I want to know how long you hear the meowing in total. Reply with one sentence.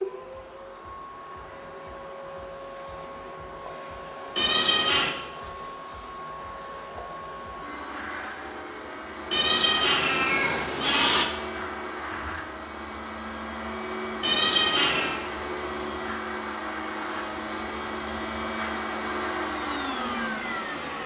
The meowing can be heard for 4 seconds in total.